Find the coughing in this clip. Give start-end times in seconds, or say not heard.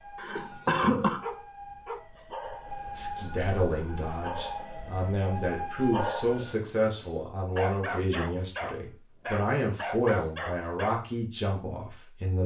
0.1-1.2.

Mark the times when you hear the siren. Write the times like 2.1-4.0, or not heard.
0.0-6.6.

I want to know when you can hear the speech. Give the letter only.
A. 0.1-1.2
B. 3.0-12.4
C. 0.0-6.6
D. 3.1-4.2
B.